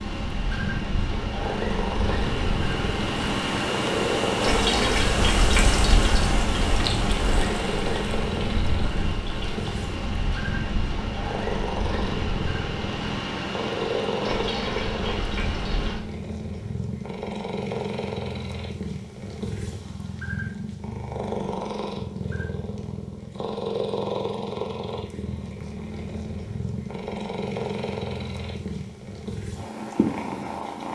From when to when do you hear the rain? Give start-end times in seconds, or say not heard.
0.0-16.0.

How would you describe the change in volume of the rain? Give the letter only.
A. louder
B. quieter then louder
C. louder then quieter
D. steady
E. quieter
C.